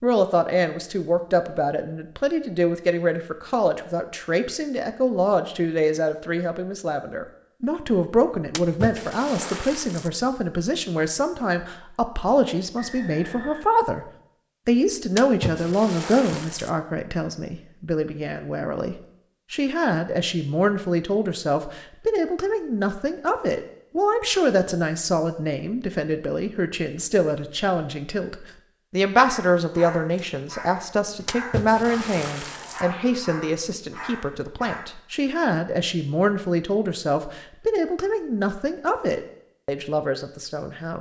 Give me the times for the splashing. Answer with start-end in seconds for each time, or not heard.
8.5-10.1, 15.2-16.7, 31.2-32.9.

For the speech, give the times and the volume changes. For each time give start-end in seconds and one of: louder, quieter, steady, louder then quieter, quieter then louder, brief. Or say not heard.
0.0-40.9 steady.